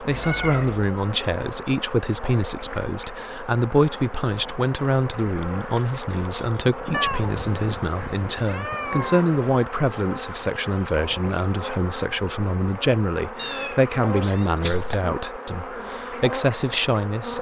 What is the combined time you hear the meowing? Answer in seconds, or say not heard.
5 s.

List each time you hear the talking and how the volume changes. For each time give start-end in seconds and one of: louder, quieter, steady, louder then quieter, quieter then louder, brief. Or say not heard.
0.0-17.3 steady.